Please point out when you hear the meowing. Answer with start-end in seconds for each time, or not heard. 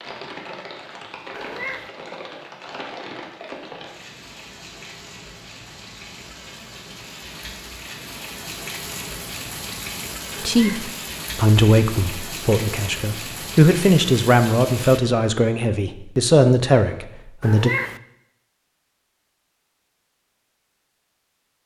1.3-1.9, 10.3-10.9, 17.4-18.0.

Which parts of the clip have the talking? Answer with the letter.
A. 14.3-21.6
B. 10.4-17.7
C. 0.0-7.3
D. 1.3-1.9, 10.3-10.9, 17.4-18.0
B.